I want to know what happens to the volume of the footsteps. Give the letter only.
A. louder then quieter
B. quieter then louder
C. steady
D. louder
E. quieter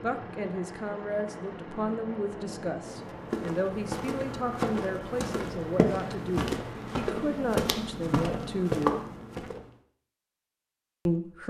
D.